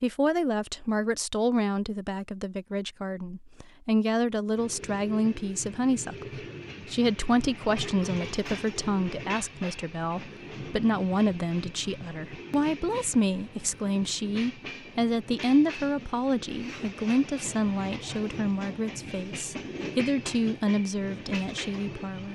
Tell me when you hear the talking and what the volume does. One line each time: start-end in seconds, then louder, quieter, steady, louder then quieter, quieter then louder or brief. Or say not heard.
0.0-22.3 steady.